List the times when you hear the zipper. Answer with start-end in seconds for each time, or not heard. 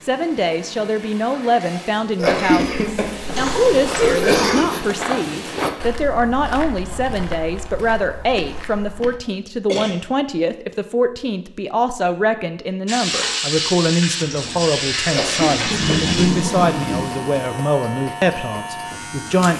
4.2-5.8, 15.7-17.4.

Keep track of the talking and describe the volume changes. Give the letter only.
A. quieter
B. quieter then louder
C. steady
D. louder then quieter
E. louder
C.